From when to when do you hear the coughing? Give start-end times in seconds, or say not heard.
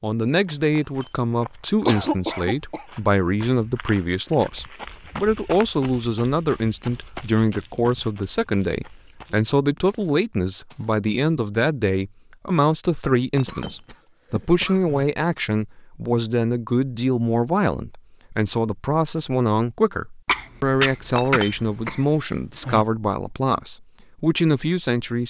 1.9-2.9, 13.4-14.9, 20.2-22.1.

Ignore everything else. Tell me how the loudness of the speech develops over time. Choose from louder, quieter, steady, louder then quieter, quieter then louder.
steady.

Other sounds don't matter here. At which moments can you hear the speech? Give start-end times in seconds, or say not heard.
0.0-25.2.